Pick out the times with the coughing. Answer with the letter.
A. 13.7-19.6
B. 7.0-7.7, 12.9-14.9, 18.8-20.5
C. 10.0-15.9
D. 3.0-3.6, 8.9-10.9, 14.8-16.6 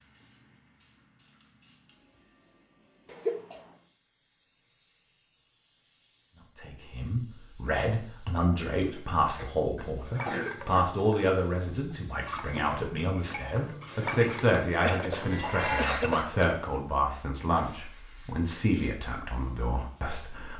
D.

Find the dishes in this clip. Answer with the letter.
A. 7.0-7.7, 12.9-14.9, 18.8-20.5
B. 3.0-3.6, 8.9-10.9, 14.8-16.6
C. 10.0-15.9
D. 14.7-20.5
C.